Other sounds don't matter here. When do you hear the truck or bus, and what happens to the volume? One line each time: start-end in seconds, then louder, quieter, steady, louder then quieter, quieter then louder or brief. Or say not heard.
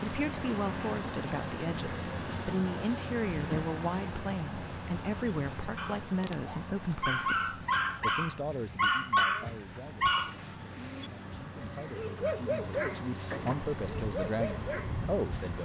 0.0-15.6 quieter then louder.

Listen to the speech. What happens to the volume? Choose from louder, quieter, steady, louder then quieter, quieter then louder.
quieter then louder.